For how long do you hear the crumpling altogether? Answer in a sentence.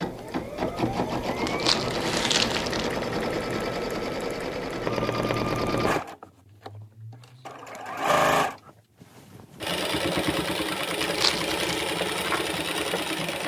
The crumpling can be heard for 2 seconds in total.